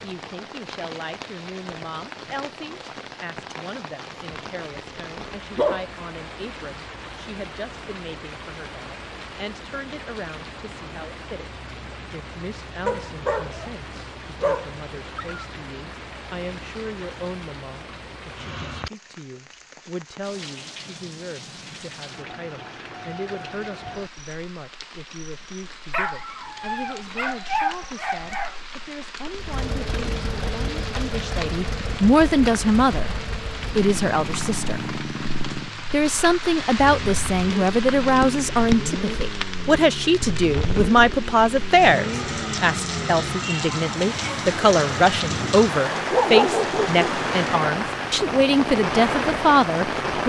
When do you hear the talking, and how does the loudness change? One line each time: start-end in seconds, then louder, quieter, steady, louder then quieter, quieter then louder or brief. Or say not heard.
0.0-11.5 steady
12.1-35.0 louder
35.9-50.2 steady.